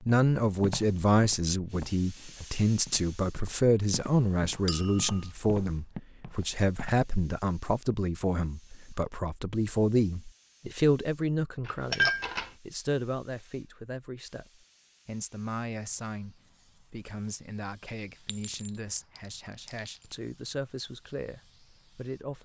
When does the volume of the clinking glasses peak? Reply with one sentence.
The volume of the clinking glasses peaks at 12 seconds.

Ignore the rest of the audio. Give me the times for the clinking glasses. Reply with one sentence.
You can hear the clinking glasses from 4.7 to 5.2 s, from 11.7 to 12.5 s and from 18.2 to 20.2 s.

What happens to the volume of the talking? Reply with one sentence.
The volume of the talking goes down.